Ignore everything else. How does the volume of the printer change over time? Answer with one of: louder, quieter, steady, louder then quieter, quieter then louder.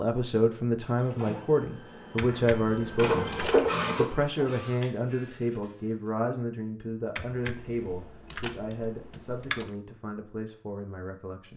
louder then quieter.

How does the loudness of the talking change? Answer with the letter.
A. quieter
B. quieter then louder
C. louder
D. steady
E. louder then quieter
A.